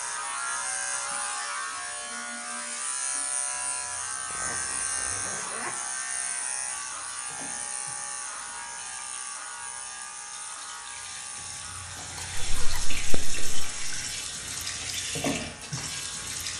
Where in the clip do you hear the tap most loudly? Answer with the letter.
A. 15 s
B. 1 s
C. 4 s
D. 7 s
A.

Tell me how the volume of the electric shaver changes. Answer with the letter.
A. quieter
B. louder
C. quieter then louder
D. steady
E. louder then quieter
A.